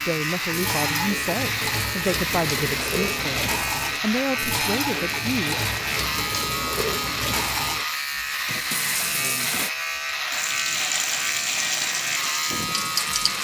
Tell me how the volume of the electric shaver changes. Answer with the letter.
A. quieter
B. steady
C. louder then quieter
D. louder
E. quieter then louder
B.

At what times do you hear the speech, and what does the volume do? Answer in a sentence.
You can hear the speech from 0.1 to 5.6 s, at a steady volume.